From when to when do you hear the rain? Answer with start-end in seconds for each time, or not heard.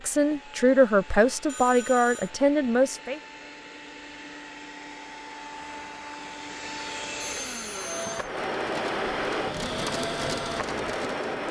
5.5-11.4.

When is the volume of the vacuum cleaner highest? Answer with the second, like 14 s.
9 s.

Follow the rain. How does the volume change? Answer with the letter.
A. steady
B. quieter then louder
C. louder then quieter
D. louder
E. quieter
D.